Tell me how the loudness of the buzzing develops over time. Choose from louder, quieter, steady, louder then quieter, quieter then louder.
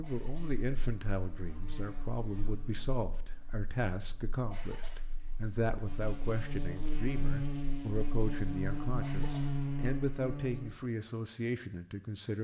quieter then louder.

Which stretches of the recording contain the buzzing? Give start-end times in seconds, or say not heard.
0.1-10.8.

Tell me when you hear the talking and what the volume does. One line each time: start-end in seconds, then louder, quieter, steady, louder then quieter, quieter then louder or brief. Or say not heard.
0.0-12.4 steady.